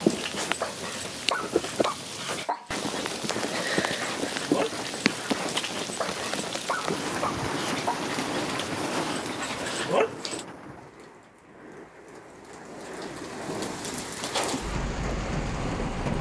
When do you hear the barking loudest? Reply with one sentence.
The volume of the barking peaks at 10 seconds.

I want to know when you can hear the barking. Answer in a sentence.
You can hear the barking from 0.0 to 10.4 s.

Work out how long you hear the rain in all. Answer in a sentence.
The rain can be heard for 16 seconds in total.